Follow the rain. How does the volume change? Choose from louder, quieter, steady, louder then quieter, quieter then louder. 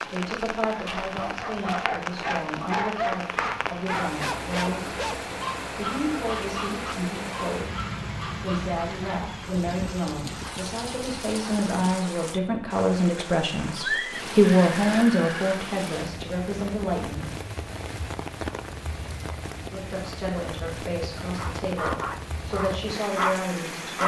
steady.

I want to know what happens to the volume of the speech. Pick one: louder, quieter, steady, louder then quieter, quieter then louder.
louder then quieter.